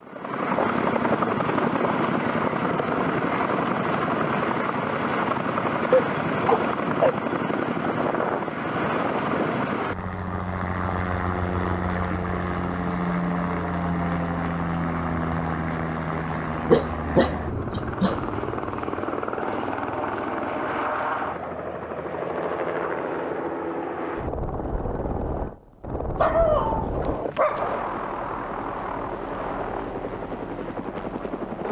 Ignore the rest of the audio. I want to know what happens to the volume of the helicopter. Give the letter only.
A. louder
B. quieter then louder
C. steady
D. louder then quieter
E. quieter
E.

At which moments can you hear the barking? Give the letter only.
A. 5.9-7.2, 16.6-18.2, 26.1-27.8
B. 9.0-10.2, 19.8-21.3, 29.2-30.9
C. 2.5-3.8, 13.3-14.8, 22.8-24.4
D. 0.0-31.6
A.